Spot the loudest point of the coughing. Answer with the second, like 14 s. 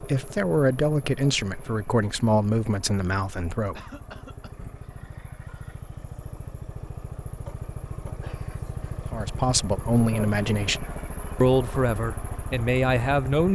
4 s.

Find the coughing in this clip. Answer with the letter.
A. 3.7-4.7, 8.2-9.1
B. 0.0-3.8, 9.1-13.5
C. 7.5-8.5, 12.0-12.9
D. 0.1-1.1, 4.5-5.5
A.